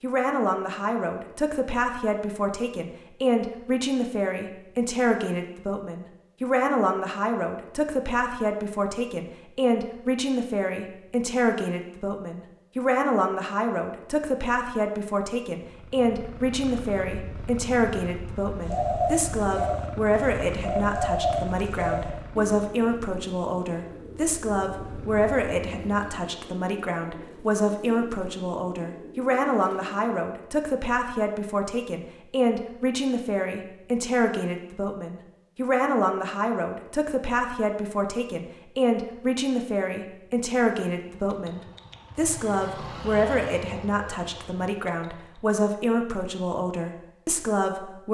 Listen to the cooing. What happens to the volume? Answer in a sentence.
The volume of the cooing goes down.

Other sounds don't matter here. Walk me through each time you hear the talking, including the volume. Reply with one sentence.
You can hear the talking from 0.0 to 48.0 s, at a steady volume.